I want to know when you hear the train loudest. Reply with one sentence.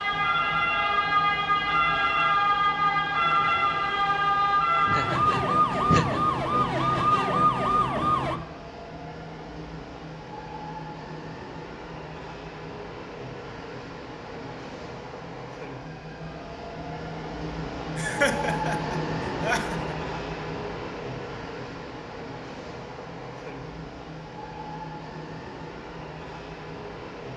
The volume of the train peaks at 19 seconds.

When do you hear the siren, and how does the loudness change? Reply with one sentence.
The siren can be heard from 0.0 to 8.4 s, at a steady volume.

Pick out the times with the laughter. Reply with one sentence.
You can hear the laughter from 4.8 to 6.3 s and from 17.9 to 19.9 s.